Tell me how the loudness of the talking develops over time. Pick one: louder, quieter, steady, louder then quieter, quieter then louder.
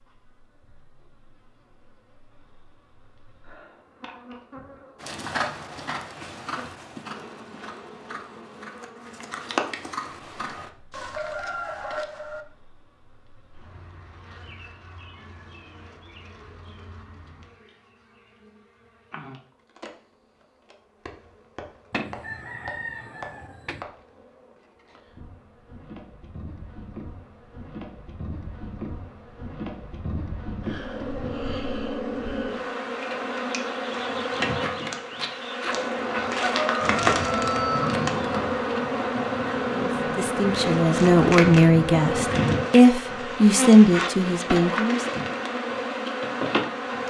louder.